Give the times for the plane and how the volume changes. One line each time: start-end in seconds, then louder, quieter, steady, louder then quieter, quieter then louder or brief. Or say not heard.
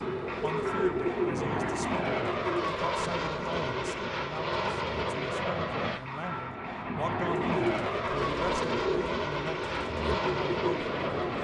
0.0-11.3 steady.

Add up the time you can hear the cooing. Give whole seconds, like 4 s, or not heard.
9 s.